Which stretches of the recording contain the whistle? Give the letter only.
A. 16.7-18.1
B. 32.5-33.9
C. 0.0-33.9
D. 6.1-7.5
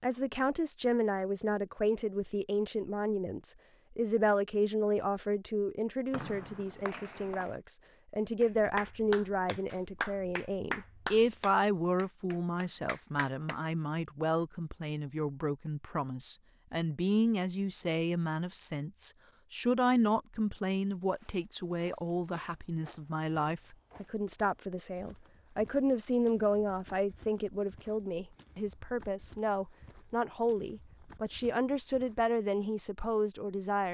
D.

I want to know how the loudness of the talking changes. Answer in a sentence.
The loudness of the talking stays about the same.